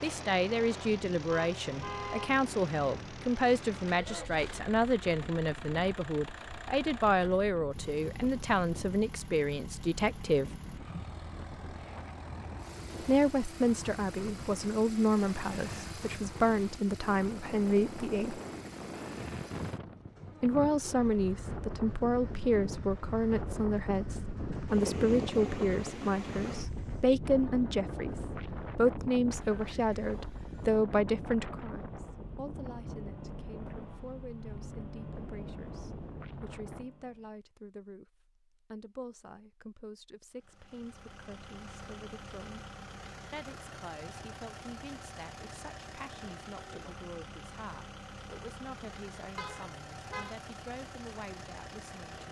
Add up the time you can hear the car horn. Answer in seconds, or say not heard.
2 s.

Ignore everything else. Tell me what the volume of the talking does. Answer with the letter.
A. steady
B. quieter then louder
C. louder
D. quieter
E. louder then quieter
D.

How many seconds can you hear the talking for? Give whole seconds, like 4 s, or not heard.
47 s.